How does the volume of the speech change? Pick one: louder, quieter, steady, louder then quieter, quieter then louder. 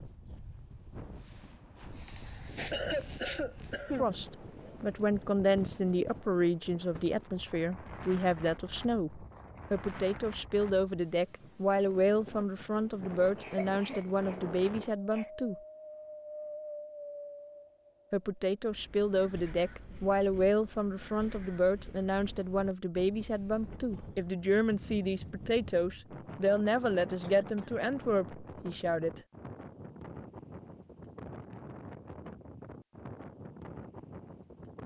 steady.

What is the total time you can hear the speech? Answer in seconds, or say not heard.
23 s.